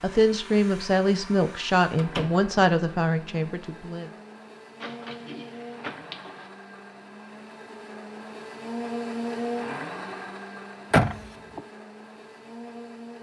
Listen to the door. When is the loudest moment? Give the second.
11 s.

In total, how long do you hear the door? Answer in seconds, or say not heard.
3 s.